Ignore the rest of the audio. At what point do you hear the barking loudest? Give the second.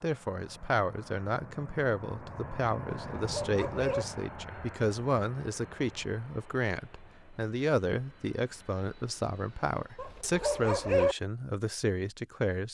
11 s.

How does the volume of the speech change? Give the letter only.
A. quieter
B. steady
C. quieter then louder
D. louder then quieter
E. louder
B.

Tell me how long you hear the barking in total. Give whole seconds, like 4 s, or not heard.
2 s.